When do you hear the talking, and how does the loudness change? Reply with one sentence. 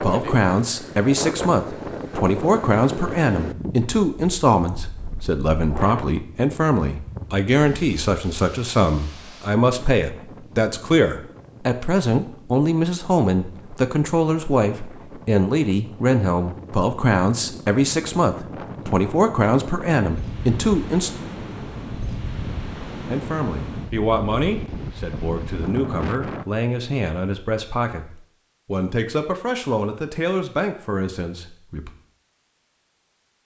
You can hear the talking from 0.0 to 21.1 s, at a steady volume; and from 23.1 to 31.9 s, at a steady volume.